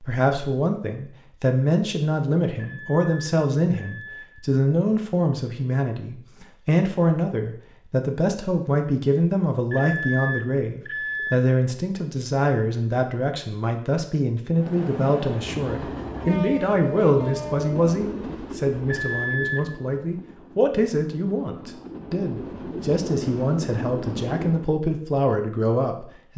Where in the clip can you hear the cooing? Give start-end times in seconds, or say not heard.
not heard.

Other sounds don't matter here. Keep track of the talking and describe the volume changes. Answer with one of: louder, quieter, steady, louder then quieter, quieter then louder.
steady.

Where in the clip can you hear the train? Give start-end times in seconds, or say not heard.
14.5-24.7.